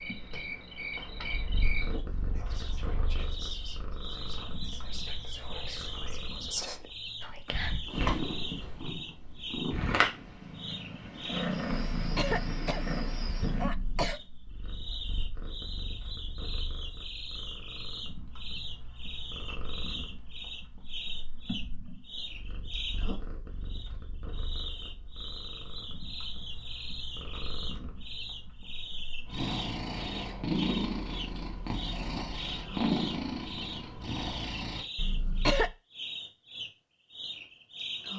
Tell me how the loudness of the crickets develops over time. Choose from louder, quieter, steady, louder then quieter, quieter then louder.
steady.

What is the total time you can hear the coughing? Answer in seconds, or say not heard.
3 s.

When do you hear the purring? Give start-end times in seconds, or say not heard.
0.0-34.9.